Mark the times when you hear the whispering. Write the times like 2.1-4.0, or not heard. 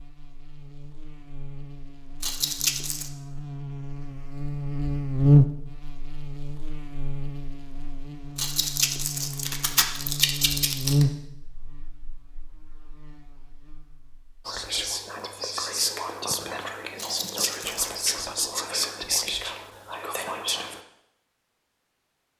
14.4-20.8.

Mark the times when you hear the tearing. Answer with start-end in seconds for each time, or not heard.
2.2-3.1, 8.3-11.1, 16.9-17.9.